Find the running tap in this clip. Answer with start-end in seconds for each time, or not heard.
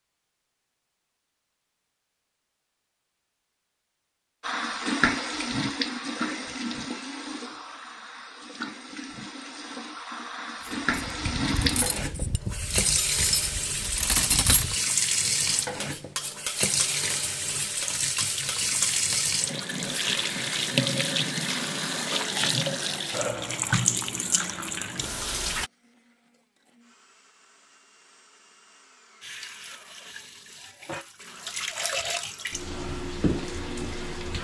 4.4-25.7, 29.2-34.4.